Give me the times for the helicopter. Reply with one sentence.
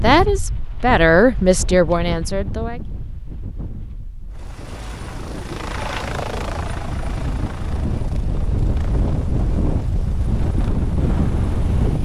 The helicopter can be heard from 4.3 to 11.9 s.